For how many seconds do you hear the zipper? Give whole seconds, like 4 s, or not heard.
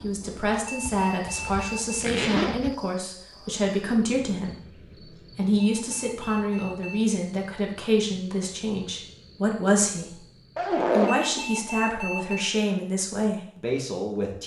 3 s.